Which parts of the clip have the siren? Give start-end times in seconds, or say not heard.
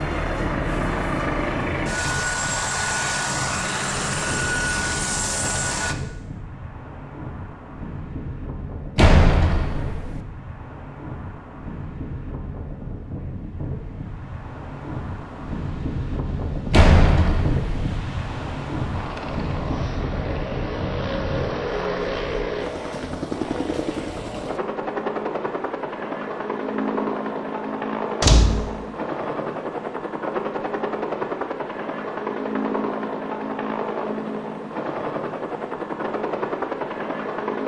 not heard.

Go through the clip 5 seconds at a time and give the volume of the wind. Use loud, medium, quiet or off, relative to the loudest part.
medium, medium, medium, loud, loud, off, off, off.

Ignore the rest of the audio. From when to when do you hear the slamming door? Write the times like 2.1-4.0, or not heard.
8.9-10.2, 16.7-17.9, 28.2-28.7.